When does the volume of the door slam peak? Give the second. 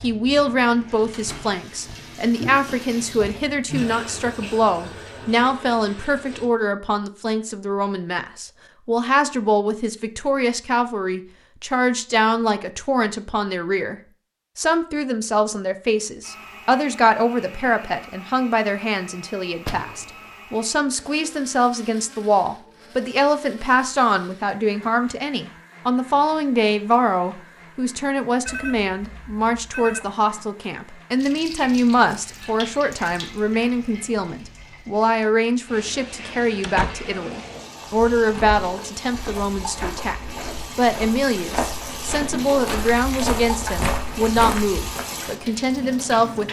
37 s.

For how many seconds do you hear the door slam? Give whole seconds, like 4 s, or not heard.
2 s.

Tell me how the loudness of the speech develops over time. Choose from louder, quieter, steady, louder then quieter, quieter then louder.
steady.